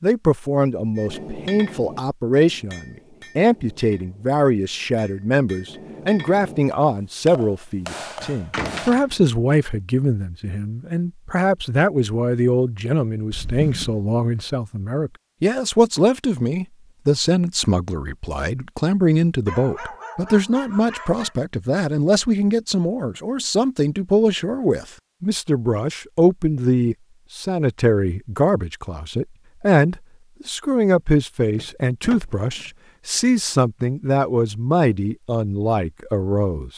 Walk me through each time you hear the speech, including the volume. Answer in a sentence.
The speech can be heard from 0.0 to 36.7 s, at a steady volume.